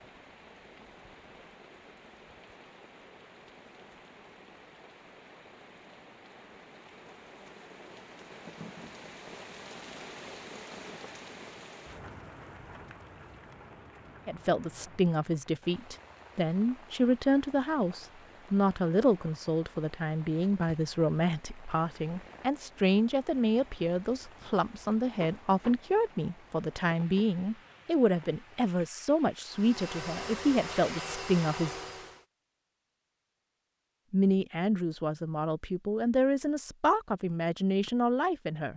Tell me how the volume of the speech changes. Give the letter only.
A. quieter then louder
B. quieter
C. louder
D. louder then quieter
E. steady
E.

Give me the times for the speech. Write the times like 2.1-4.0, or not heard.
14.2-31.7, 34.1-38.7.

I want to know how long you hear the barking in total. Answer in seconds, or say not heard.
not heard.